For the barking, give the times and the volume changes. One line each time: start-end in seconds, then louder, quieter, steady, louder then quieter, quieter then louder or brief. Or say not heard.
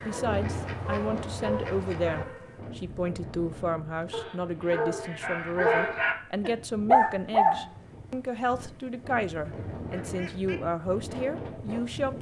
0.0-7.7 quieter then louder.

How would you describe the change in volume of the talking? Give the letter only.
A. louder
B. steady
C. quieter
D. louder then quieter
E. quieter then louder
B.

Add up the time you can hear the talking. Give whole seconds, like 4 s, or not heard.
12 s.